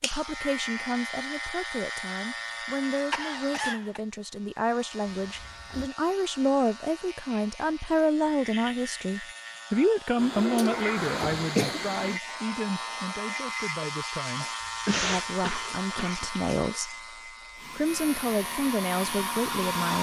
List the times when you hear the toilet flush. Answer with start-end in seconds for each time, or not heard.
5.1-5.9, 10.2-12.2.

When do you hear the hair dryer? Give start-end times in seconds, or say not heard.
17.6-19.9.